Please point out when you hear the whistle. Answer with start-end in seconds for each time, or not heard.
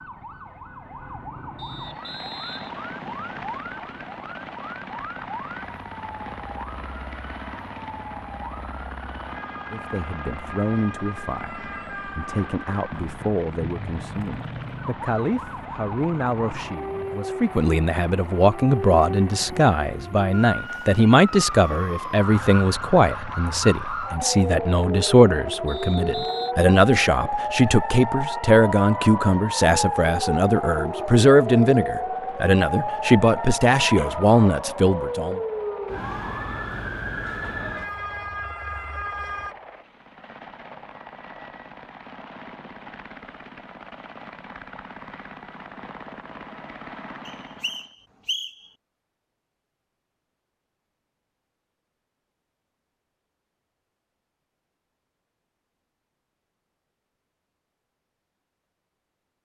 1.6-3.6, 25.6-26.6, 47.2-48.7.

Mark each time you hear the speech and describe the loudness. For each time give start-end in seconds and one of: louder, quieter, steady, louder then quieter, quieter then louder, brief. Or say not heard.
9.7-35.4 louder.